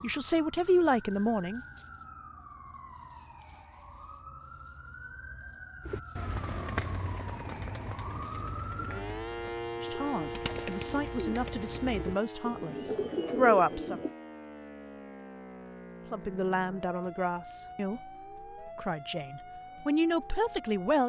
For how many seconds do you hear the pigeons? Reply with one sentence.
You can hear the pigeons for 8 seconds altogether.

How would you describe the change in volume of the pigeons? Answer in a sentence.
The loudness of the pigeons goes down, then up.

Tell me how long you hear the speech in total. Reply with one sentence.
The speech can be heard for 10 seconds in total.